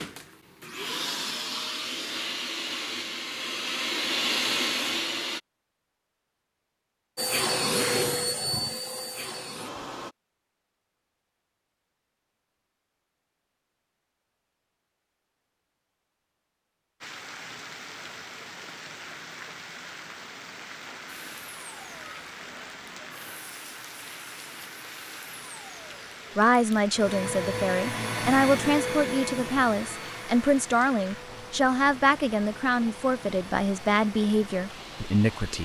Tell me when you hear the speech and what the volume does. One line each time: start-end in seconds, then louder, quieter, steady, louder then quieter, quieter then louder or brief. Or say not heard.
26.4-35.6 steady.